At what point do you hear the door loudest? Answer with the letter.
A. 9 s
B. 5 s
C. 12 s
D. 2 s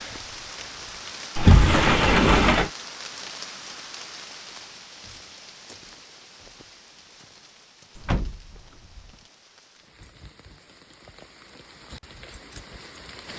D.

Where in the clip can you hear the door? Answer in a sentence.
The door can be heard from 1.4 to 2.7 s and from 8.0 to 9.1 s.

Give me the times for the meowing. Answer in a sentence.
You can't hear the meowing here.